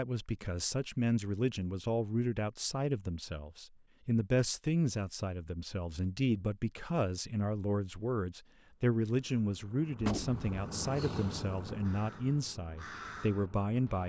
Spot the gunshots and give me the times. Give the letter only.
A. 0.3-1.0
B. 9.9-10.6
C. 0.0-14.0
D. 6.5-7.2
B.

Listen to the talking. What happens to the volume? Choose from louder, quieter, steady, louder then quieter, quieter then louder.
steady.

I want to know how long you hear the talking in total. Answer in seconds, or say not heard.
14 s.